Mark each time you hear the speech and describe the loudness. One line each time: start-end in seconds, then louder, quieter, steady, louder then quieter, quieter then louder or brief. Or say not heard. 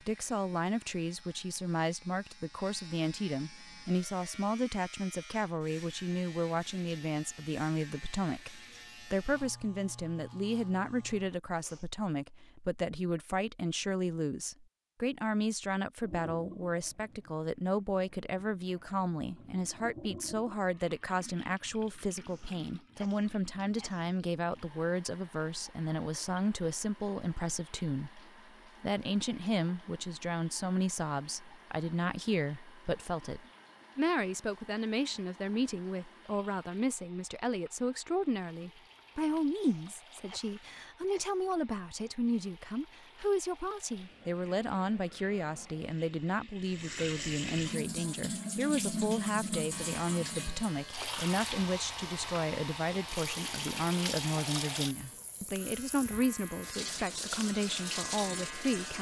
0.1-58.9 steady.